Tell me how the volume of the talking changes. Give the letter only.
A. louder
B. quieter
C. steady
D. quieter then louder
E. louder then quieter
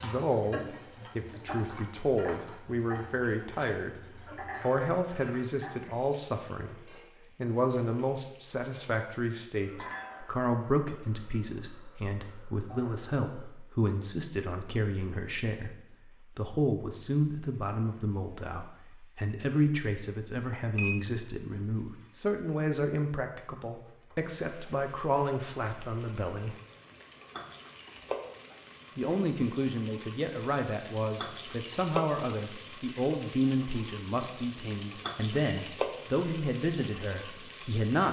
C.